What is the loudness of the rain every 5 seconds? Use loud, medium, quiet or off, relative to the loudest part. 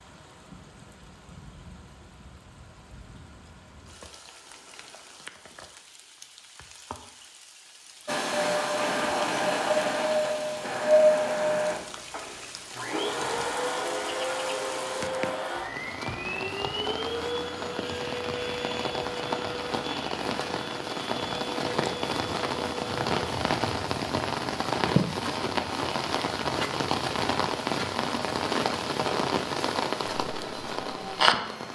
quiet, quiet, quiet, medium, loud, loud, loud.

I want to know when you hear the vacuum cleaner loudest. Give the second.
11 s.